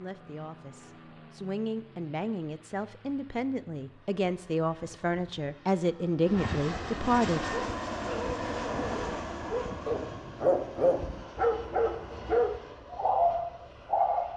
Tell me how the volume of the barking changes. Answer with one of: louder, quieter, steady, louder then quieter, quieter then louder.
louder.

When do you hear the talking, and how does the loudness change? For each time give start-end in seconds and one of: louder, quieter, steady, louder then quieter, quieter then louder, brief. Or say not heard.
0.0-7.5 louder.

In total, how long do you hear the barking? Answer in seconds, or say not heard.
7 s.